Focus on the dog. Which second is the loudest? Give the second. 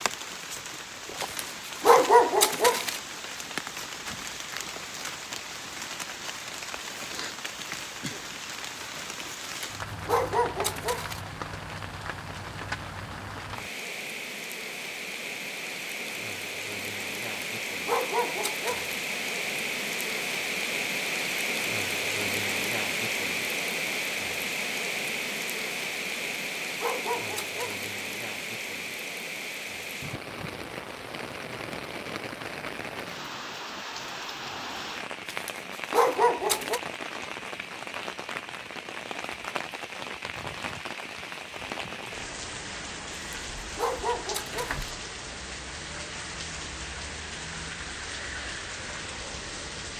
2 s.